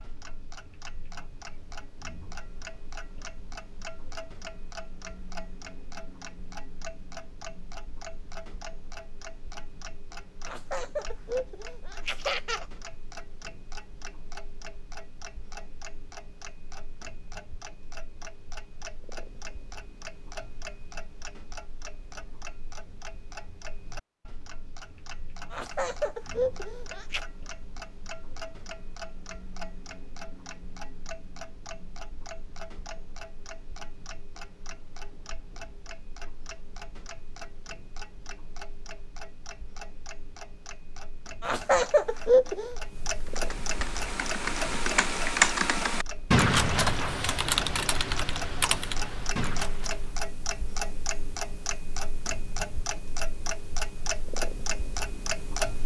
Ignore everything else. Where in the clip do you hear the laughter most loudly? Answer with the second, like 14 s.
42 s.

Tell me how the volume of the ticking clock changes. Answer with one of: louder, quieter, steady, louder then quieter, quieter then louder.
louder.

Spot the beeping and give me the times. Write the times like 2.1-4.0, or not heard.
not heard.